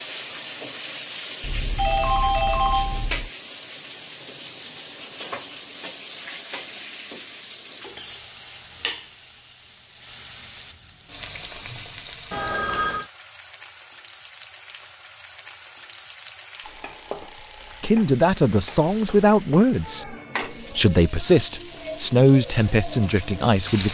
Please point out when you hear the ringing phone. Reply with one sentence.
The ringing phone can be heard from 1.4 to 3.3 s, from 12.3 to 13.1 s and from 16.6 to 17.9 s.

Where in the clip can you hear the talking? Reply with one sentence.
You can hear the talking from 17.8 to 23.8 s.